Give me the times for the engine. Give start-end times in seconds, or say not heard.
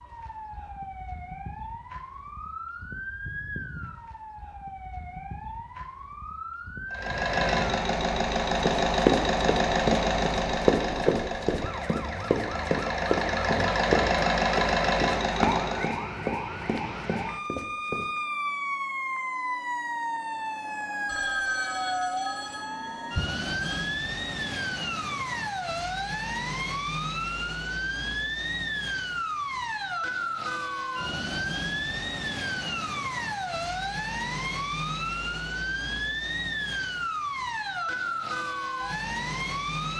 6.9-16.0.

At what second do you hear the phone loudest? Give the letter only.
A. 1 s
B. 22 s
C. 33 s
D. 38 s
B.